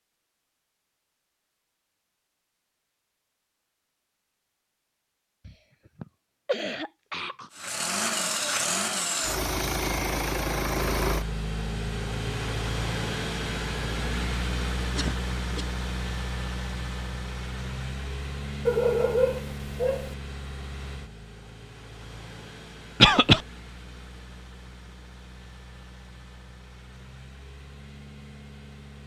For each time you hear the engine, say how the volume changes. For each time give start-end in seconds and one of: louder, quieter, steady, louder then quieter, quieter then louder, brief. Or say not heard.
7.5-29.0 quieter.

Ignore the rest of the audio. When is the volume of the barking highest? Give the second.
19 s.